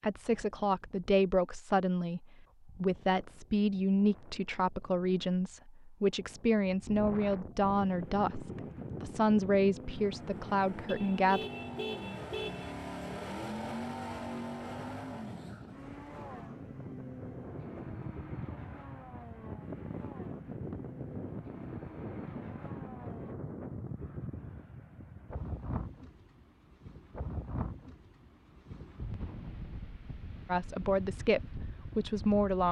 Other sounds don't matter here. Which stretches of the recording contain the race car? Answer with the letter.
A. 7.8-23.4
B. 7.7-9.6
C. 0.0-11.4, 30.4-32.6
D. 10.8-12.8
A.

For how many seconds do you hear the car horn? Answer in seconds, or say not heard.
2 s.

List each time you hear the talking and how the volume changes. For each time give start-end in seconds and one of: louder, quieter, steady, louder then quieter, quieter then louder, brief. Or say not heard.
0.0-11.4 steady
30.4-32.6 brief.